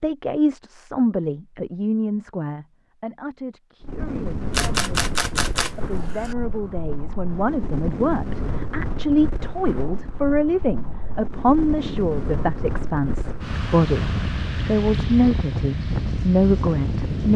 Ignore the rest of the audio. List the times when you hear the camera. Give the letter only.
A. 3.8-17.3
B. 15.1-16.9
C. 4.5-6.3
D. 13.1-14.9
C.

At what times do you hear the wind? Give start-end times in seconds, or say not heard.
3.8-17.3.